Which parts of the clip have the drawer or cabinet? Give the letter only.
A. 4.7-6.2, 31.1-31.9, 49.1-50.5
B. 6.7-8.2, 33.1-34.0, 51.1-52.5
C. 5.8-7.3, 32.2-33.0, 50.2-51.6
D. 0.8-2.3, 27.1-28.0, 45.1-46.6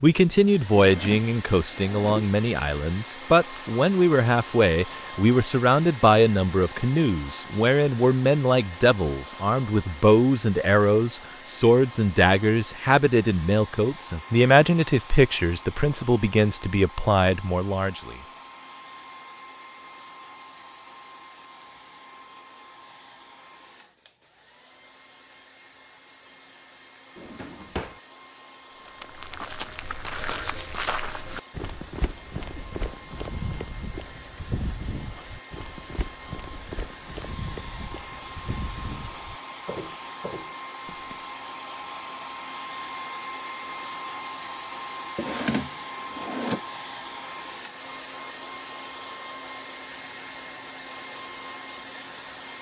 D.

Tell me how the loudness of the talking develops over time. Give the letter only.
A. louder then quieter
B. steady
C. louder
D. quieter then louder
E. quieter
B.